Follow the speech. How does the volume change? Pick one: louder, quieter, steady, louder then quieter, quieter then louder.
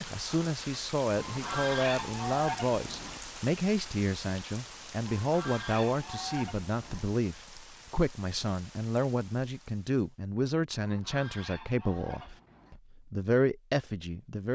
steady.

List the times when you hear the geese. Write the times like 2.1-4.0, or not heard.
1.1-3.2, 5.0-7.1, 10.8-12.8.